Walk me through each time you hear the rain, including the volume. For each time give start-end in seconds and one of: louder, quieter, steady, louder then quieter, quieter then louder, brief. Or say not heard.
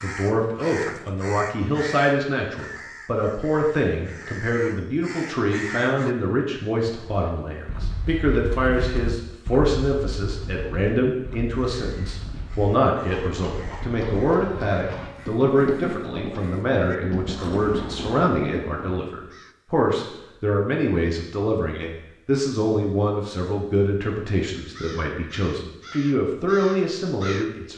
not heard.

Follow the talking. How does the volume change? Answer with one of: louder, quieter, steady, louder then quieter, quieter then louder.
steady.